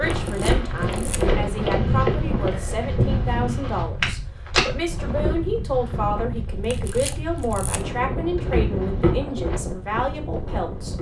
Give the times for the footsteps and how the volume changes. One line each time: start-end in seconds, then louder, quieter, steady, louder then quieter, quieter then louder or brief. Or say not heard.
0.0-5.5 steady
8.2-10.9 brief.